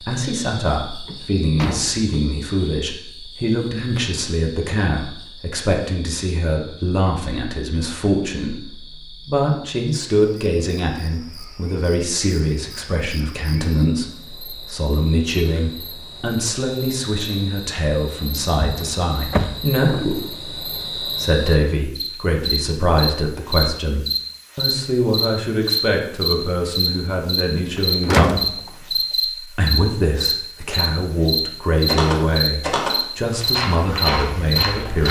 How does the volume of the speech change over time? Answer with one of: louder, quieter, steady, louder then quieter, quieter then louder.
steady.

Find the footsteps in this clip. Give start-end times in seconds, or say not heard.
31.9-35.0.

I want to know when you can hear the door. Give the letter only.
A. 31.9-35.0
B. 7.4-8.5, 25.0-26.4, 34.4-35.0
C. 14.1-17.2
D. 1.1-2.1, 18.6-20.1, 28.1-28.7
D.